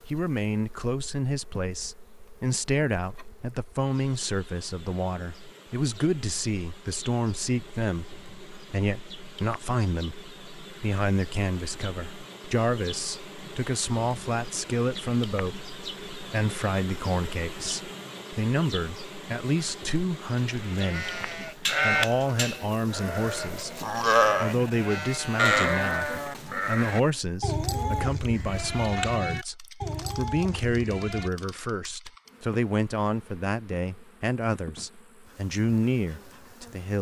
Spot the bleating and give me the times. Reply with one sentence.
You can hear the bleating from 20.4 to 31.3 s.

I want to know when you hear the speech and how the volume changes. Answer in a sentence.
The speech can be heard from 0.1 to 36.9 s, at a steady volume.